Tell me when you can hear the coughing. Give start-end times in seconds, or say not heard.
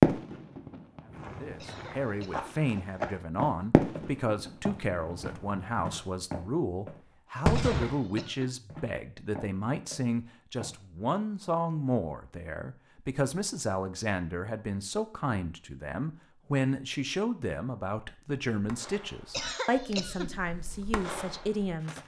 1.6-2.6, 7.6-8.6, 19.3-20.4.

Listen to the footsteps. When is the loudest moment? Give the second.
3 s.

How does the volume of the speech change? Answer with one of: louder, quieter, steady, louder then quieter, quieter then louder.
steady.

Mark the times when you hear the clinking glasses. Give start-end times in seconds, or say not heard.
not heard.